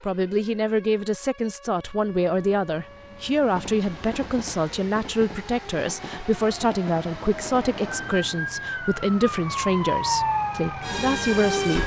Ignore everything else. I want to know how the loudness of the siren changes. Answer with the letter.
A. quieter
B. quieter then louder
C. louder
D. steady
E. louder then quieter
C.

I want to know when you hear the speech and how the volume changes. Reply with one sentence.
You can hear the speech from 0.0 to 11.8 s, at a steady volume.